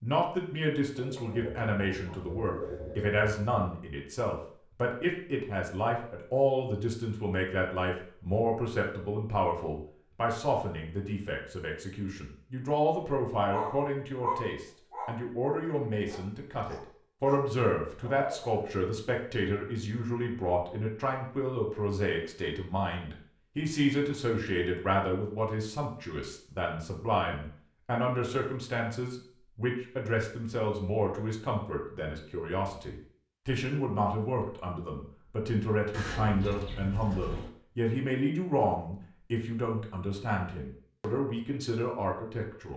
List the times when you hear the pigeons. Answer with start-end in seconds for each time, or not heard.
0.9-3.6, 35.9-37.5.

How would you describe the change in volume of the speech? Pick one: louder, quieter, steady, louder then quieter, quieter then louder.
steady.